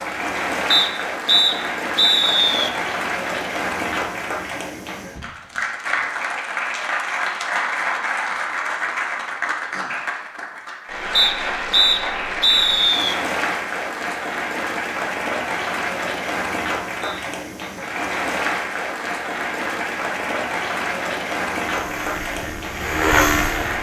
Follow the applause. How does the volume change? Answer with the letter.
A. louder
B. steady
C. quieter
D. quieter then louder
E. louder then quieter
B.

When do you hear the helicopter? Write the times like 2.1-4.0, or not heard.
21.8-23.7.